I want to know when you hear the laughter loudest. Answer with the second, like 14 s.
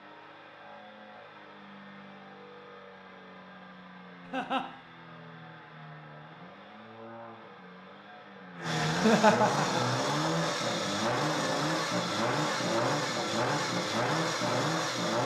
9 s.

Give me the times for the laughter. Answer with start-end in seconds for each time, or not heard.
4.2-4.7, 8.8-9.9.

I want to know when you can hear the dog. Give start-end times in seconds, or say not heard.
not heard.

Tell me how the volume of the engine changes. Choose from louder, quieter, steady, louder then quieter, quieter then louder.
louder.